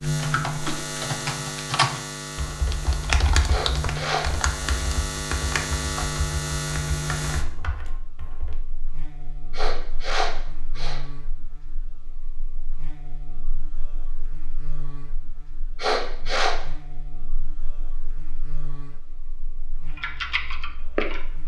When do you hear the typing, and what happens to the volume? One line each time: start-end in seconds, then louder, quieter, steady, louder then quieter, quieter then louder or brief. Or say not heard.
0.0-8.6 quieter
19.9-21.4 brief.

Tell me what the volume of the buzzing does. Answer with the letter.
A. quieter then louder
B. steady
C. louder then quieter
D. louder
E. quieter
E.